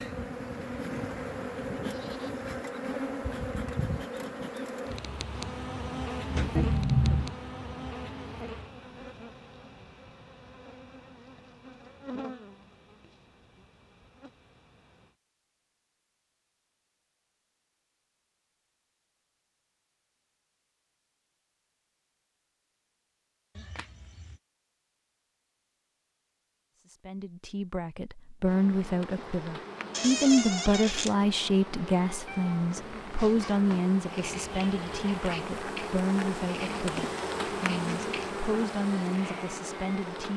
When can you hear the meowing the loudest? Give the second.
7 s.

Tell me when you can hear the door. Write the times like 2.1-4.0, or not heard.
6.2-7.2, 29.9-31.1.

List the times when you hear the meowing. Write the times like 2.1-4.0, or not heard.
6.5-7.3, 23.6-24.4, 32.2-33.9.